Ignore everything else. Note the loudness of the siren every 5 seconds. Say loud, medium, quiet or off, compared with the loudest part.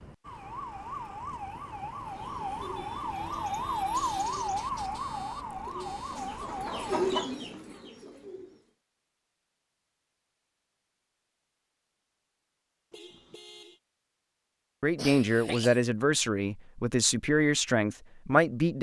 loud, loud, off, off.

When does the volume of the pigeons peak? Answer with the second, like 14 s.
7 s.